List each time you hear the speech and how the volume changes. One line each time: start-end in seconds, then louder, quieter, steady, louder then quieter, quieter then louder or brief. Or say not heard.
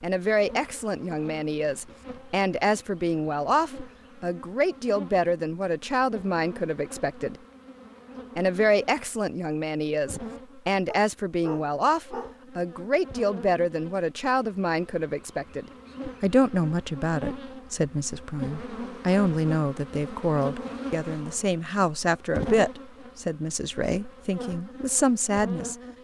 0.0-7.3 steady
8.3-25.8 steady.